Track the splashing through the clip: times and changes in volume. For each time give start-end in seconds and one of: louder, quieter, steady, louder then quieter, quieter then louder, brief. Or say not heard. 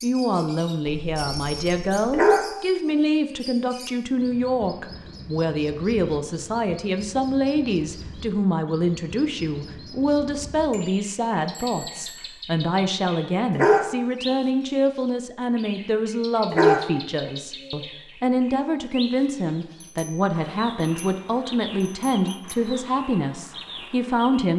not heard.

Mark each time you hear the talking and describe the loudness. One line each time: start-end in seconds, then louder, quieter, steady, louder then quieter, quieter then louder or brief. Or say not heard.
0.0-24.5 steady.